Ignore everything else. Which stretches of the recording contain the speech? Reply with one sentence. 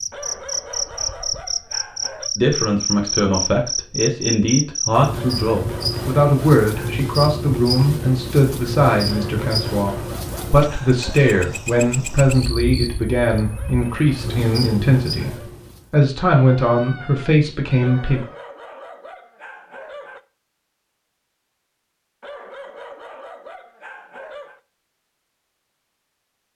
You can hear the speech from 2.4 to 18.2 s.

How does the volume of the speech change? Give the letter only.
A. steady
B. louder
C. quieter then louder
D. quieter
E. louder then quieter
A.